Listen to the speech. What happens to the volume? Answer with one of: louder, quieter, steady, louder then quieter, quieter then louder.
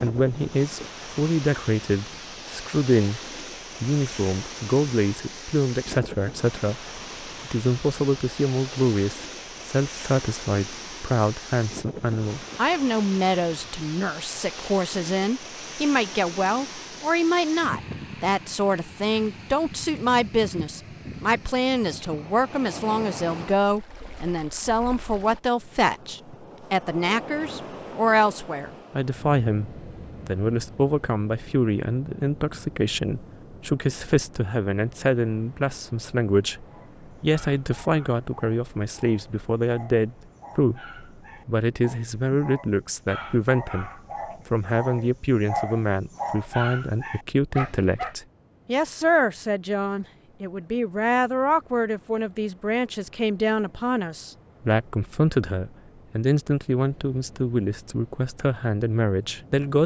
steady.